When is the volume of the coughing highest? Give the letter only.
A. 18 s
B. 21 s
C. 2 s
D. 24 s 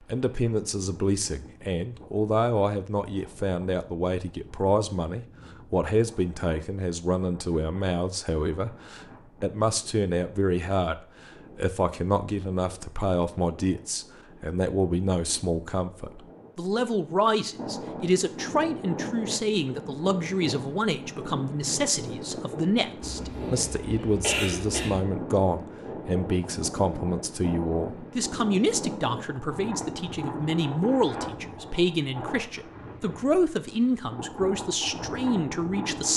D.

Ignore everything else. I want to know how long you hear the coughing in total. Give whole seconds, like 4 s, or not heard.
2 s.